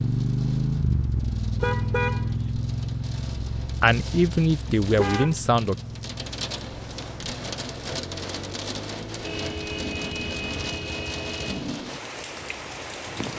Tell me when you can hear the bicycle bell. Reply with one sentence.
The bicycle bell can't be heard in this clip.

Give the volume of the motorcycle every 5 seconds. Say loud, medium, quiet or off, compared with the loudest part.
loud, quiet, off.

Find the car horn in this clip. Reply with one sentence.
The car horn can be heard from 1.6 to 2.5 s, from 4.8 to 5.3 s and from 9.2 to 11.7 s.